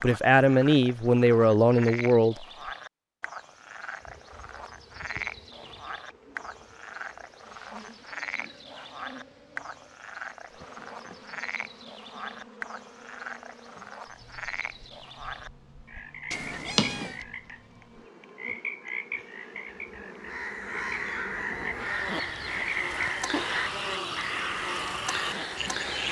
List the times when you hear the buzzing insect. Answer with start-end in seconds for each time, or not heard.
4.0-26.0.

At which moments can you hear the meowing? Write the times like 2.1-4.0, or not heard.
16.3-17.2.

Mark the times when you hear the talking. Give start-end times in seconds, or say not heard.
0.0-2.5.